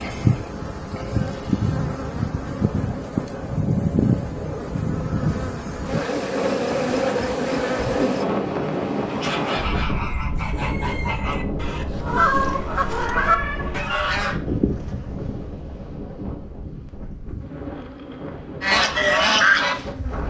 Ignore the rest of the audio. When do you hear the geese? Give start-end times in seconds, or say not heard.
9.1-14.4, 18.6-20.2.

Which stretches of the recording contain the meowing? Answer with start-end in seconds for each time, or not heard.
12.1-13.8.